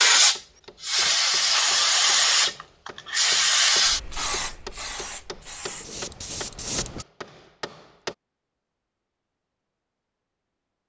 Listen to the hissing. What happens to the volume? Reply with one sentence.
The volume of the hissing goes down.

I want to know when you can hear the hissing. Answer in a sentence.
The hissing can be heard from 0.0 to 7.0 s.